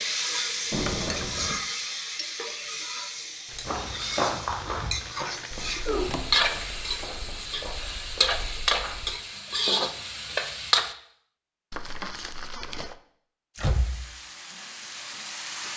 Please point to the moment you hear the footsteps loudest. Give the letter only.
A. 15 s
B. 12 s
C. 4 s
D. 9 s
C.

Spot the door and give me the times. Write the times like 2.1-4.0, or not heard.
0.7-1.6, 6.0-6.8, 13.6-14.2.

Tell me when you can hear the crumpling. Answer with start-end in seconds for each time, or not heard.
3.5-6.0, 11.7-12.9.